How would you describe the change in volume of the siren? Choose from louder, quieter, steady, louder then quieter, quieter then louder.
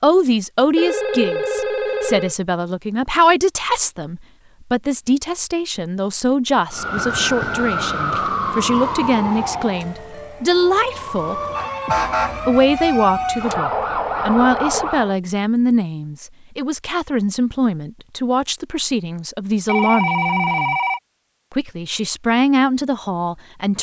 quieter then louder.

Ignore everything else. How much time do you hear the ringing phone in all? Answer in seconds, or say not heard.
5 s.